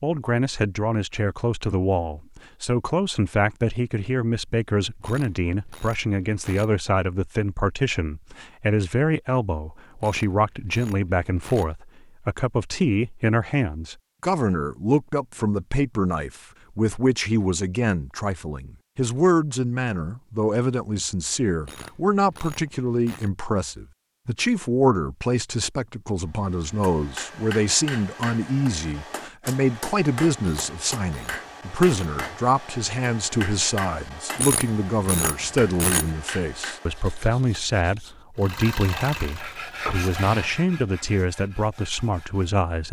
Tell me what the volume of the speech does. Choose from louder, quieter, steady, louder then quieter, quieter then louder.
steady.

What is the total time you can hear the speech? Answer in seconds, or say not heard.
43 s.